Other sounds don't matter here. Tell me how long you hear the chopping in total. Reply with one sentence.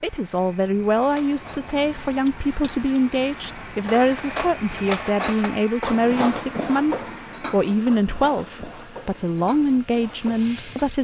The chopping can't be heard in this clip.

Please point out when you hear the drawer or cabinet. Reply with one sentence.
You can't hear the drawer or cabinet here.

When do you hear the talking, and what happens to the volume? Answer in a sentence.
You can hear the talking from 0.0 to 10.9 s, at a steady volume.